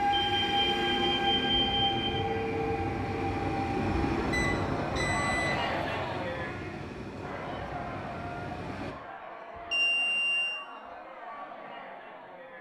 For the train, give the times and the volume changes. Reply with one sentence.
The train can be heard from 0.0 to 8.9 s, getting quieter.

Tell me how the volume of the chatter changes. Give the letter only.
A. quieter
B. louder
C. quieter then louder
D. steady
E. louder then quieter
A.